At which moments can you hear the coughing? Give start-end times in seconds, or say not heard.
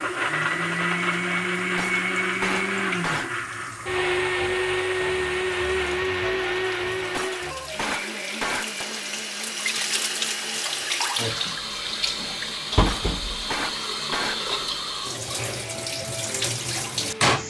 not heard.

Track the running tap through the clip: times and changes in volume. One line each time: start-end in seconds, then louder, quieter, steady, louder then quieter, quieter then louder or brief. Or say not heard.
0.0-17.4 louder.